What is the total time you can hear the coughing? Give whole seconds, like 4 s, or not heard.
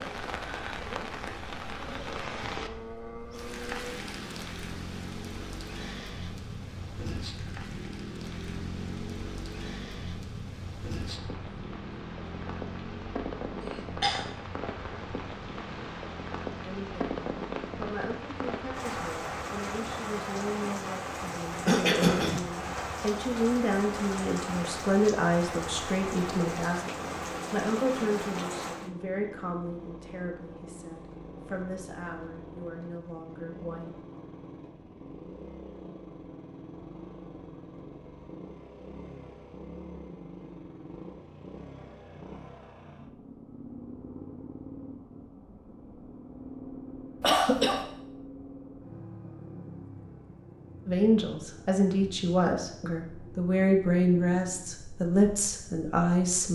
2 s.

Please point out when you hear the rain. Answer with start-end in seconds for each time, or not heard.
0.0-28.9.